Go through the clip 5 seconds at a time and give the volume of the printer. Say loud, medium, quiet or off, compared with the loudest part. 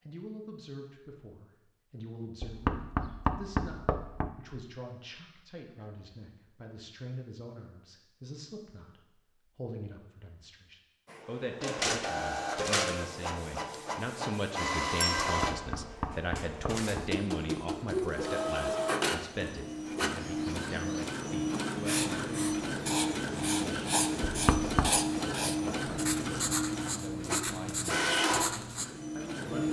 off, off, loud, loud, loud, loud.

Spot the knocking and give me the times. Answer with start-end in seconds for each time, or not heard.
2.4-4.3, 15.2-17.1, 24.2-25.0.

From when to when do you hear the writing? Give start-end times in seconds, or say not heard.
21.9-28.9.